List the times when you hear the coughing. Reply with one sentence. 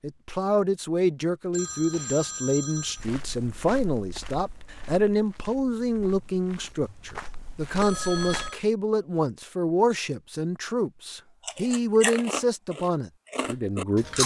The coughing can't be heard in this clip.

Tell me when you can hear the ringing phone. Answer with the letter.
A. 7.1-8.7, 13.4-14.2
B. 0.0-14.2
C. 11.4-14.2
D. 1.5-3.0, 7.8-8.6
D.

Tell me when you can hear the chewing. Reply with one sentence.
The chewing can be heard from 11.4 to 14.2 s.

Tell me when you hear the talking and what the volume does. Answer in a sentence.
The talking can be heard from 0.0 to 14.2 s, at a steady volume.